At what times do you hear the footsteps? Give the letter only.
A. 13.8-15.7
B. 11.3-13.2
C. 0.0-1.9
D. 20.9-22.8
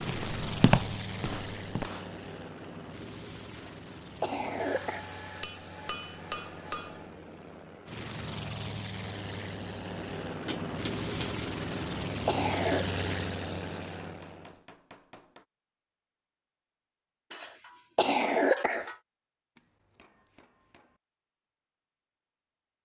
C.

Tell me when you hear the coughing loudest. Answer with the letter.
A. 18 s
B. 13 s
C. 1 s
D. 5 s
A.